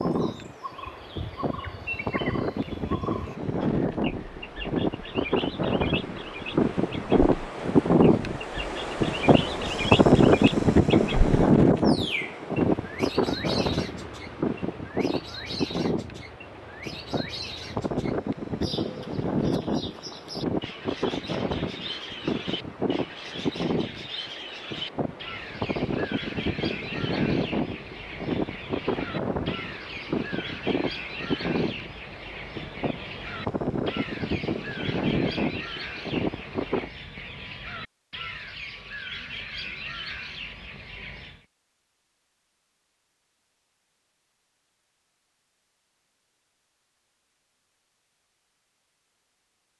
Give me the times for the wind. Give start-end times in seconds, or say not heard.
0.0-36.9.